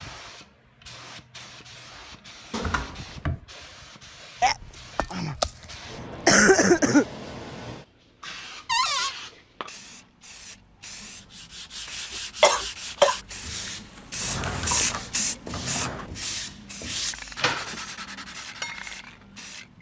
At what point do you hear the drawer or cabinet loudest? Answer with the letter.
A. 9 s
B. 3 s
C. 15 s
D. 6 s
A.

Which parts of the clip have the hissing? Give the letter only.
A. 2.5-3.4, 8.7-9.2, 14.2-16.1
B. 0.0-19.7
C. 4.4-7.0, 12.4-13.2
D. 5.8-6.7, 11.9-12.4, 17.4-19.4
B.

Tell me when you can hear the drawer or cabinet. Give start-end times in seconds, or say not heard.
2.5-3.4, 8.7-9.2, 14.2-16.1.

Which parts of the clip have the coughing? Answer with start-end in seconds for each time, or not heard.
4.4-7.0, 12.4-13.2.